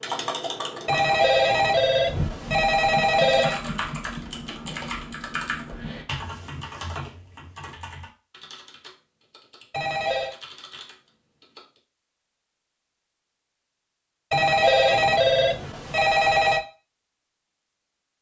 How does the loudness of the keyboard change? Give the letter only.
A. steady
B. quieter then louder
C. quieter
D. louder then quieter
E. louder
C.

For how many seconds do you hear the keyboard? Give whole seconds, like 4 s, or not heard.
12 s.